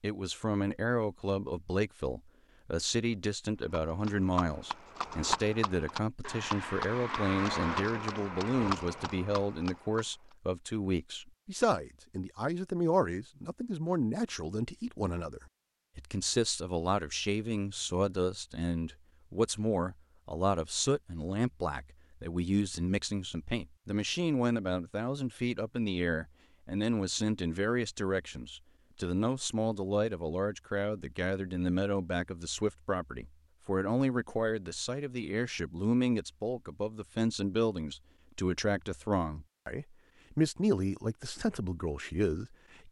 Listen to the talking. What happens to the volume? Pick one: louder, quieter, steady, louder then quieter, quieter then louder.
steady.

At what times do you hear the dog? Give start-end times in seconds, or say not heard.
not heard.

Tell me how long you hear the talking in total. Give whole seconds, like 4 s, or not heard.
43 s.